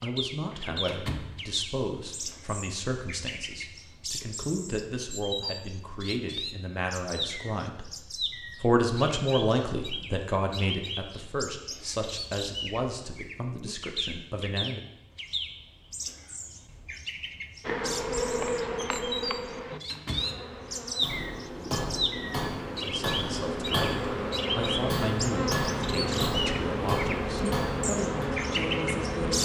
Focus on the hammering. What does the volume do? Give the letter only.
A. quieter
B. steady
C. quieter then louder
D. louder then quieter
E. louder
B.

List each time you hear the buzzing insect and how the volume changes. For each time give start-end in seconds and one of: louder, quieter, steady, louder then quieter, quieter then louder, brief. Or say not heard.
17.6-29.3 quieter then louder.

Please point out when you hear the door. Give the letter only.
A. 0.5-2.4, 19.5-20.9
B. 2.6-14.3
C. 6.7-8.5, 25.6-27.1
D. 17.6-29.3
A.